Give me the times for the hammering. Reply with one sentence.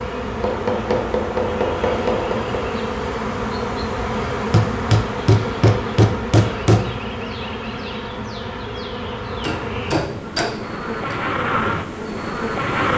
You can hear the hammering from 0.4 to 2.6 s, from 4.5 to 6.8 s and from 9.4 to 11.2 s.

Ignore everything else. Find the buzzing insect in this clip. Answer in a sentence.
You can hear the buzzing insect from 0.0 to 12.9 s.